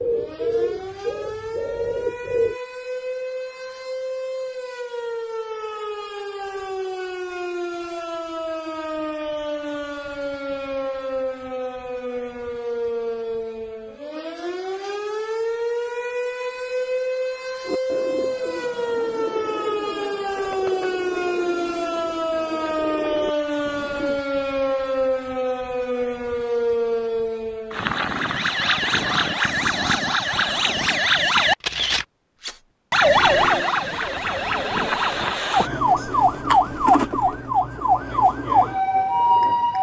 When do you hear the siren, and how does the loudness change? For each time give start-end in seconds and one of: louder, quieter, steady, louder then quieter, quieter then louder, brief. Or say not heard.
0.0-39.7 louder.